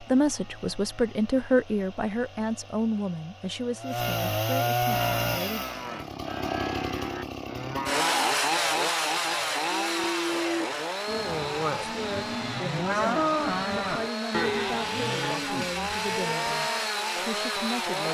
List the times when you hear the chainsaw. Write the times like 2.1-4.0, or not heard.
0.0-18.0.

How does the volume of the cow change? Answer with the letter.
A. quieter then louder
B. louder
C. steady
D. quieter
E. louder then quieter
E.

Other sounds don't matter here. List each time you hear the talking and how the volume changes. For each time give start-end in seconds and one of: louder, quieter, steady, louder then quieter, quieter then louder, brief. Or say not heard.
0.0-5.7 quieter
11.9-18.0 steady.